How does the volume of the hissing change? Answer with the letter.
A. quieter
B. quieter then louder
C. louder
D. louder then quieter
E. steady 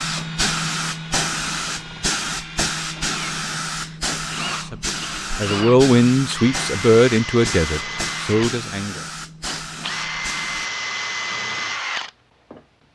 A.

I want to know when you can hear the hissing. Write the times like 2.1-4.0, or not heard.
0.0-10.7.